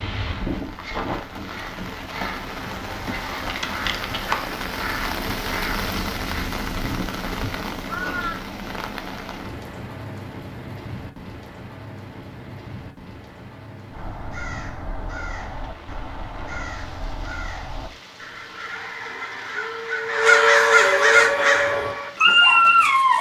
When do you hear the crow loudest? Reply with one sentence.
The loudest moment of the crow is at 20 seconds.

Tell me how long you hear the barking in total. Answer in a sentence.
The barking can be heard for 2 seconds in total.